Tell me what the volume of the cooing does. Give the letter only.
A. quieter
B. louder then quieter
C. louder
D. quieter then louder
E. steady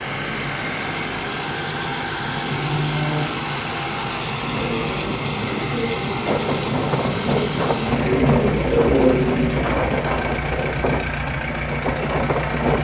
C.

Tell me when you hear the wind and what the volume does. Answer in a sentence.
The wind can be heard from 6.2 to 12.7 s, at a steady volume.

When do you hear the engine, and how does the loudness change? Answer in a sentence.
You can hear the engine from 0.0 to 12.7 s, at a steady volume.